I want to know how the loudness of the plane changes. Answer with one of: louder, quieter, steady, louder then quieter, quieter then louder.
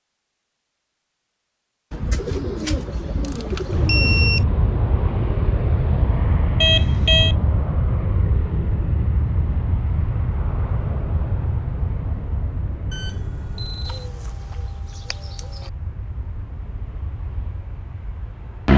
quieter.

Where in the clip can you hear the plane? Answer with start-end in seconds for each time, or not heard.
3.6-18.7.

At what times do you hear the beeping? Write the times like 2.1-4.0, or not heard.
3.2-4.5, 6.6-7.3, 12.9-14.1.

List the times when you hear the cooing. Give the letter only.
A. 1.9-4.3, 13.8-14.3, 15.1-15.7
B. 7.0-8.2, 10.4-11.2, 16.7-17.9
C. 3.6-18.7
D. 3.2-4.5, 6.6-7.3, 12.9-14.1
A.